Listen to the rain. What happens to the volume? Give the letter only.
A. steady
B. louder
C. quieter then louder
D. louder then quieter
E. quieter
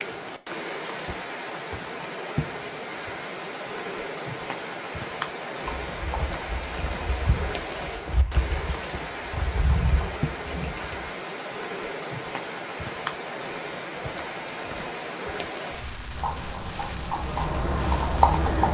A.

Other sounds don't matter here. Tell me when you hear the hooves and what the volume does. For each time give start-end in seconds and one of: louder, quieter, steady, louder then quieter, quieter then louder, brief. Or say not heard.
5.6-11.1 louder
16.1-18.6 brief.